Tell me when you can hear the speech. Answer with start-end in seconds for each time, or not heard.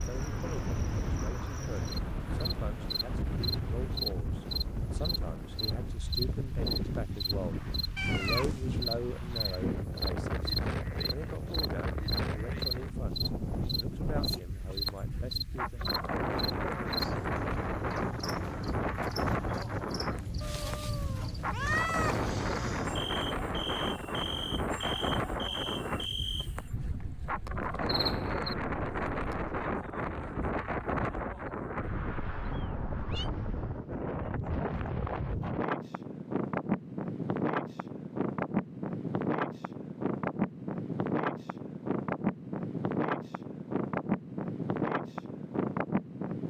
0.1-15.8.